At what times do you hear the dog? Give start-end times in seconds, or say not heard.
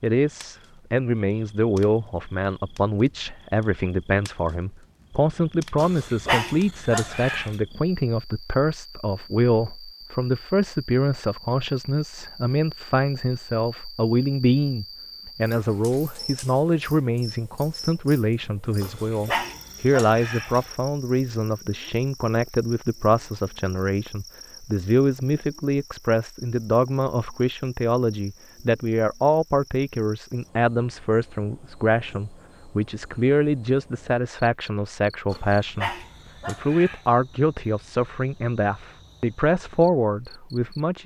5.8-7.5, 18.8-20.7, 35.3-37.0.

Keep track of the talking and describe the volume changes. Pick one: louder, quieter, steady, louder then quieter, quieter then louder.
steady.